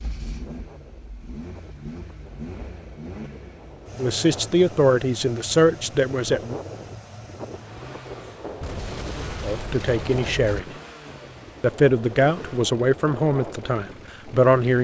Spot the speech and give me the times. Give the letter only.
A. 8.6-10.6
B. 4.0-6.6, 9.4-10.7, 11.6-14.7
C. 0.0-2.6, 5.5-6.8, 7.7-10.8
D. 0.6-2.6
B.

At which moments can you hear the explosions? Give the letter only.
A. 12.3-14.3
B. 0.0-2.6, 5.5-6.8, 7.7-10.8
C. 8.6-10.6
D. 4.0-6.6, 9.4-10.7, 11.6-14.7
C.